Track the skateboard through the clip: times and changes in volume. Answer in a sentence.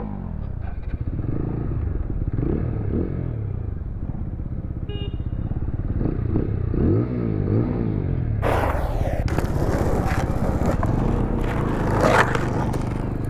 The skateboard can be heard from 8.4 to 13.2 s, getting louder.